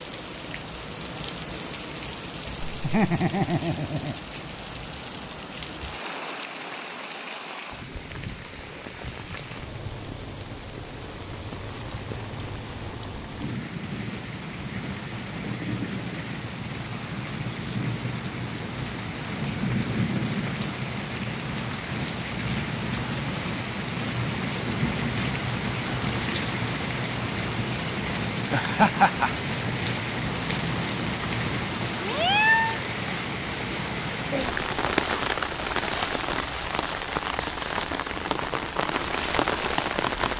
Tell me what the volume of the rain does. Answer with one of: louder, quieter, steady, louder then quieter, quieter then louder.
louder.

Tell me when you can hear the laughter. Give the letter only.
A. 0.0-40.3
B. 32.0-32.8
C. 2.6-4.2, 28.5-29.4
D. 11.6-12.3
C.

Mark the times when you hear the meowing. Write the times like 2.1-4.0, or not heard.
32.0-32.8.